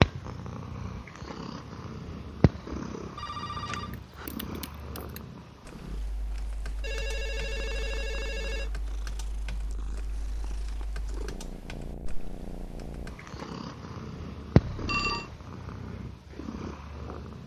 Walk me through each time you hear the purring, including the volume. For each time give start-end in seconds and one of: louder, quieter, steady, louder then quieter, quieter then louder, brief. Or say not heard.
0.0-17.4 quieter then louder.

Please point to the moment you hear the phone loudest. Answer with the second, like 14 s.
15 s.